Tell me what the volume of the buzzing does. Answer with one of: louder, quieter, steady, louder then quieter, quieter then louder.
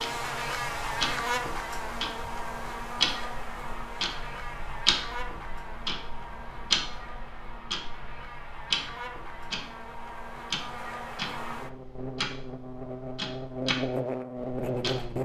quieter then louder.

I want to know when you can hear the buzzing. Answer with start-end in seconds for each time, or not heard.
0.0-15.2.